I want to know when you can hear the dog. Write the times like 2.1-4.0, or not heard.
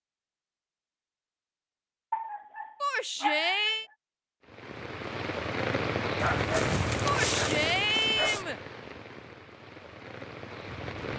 2.1-3.8, 6.2-8.4.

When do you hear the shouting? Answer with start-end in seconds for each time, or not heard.
2.8-3.9, 7.0-8.6.